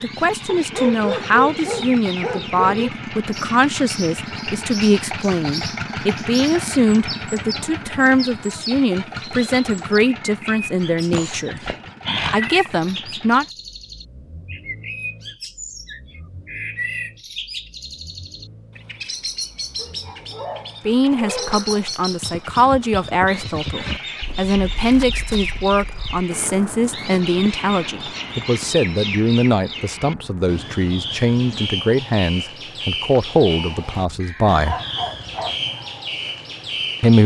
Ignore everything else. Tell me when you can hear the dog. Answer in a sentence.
The dog can be heard from 0.5 to 2.9 s, from 11.1 to 12.7 s, from 19.8 to 21.6 s and from 33.9 to 35.6 s.